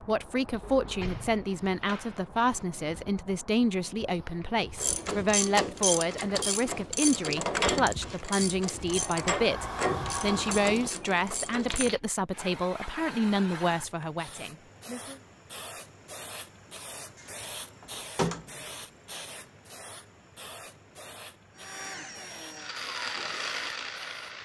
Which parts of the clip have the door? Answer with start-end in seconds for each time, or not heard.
0.6-2.6, 8.7-10.9, 17.1-18.8.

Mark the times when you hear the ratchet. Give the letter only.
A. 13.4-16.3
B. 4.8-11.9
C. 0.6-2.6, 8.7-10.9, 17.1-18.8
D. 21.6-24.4
B.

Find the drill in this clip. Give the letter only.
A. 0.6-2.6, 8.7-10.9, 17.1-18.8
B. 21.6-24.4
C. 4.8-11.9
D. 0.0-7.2
B.